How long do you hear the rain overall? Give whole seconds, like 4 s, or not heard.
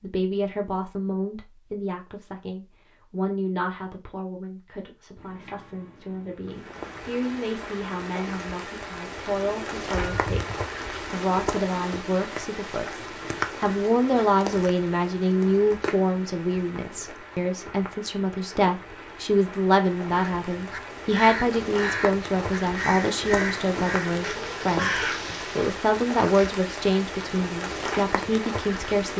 23 s.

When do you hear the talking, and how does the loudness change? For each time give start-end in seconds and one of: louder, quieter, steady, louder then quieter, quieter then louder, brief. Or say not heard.
0.0-29.1 louder.